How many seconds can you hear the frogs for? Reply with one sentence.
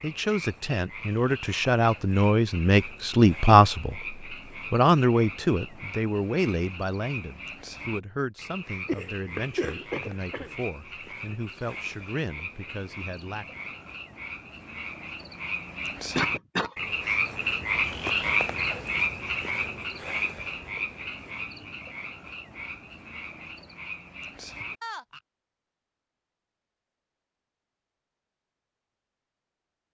The frogs can be heard for 25 seconds in total.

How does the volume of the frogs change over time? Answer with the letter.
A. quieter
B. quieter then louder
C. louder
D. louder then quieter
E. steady
D.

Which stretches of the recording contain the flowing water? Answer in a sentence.
You can't hear the flowing water here.